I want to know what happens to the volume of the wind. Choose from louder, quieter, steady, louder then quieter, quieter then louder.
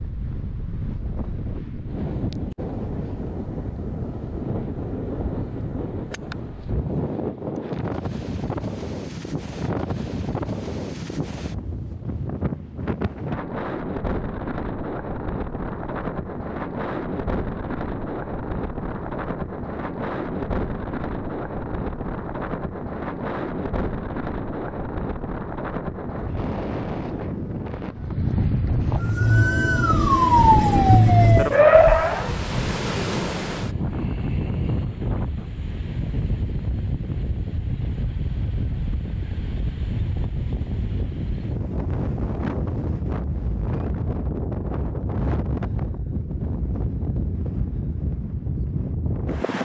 steady.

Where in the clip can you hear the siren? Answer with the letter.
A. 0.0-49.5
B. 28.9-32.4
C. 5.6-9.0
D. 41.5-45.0
B.